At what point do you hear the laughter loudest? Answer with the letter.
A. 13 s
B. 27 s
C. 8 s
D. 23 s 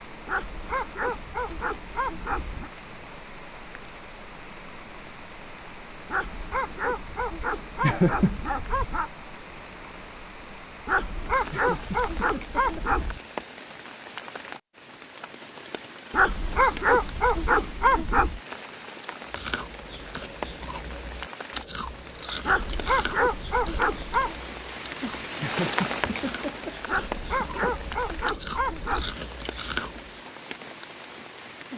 C.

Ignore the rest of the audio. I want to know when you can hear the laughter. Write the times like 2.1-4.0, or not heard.
7.8-8.4, 11.5-13.1, 25.4-27.8.